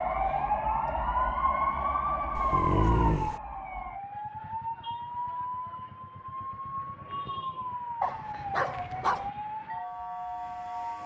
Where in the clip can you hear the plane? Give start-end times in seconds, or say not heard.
not heard.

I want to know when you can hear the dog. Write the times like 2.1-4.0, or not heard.
2.4-3.4, 8.0-9.3.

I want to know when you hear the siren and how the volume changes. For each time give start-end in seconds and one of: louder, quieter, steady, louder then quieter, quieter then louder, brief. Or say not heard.
0.0-11.0 quieter.